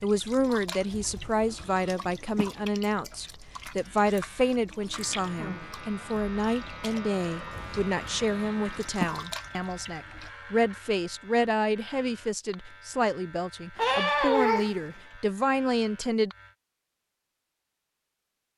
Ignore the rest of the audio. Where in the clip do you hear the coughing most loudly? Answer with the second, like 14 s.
14 s.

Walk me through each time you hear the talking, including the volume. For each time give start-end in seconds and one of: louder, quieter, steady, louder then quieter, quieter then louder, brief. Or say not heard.
0.0-16.3 steady.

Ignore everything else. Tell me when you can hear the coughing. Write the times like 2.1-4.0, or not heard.
0.9-2.5, 7.5-9.2, 13.8-14.8.